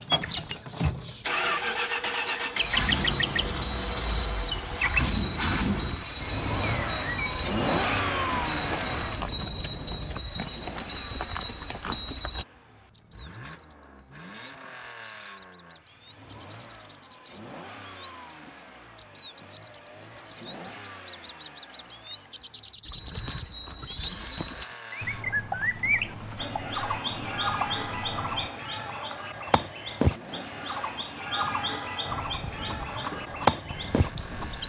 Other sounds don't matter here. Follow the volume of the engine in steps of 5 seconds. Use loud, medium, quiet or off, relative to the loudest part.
loud, loud, quiet, quiet, quiet, quiet, quiet.